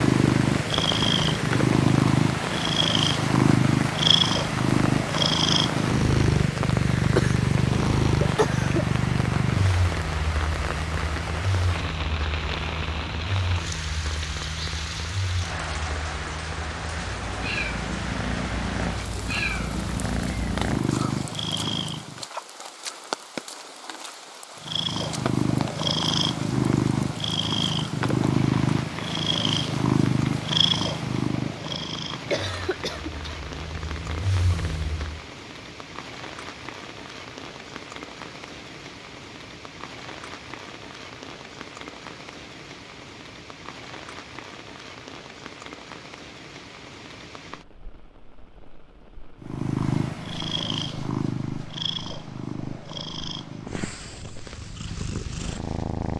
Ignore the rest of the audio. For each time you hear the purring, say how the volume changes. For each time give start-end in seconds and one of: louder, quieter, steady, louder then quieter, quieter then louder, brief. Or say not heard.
0.0-22.2 quieter then louder
24.6-35.2 quieter
49.4-56.1 quieter.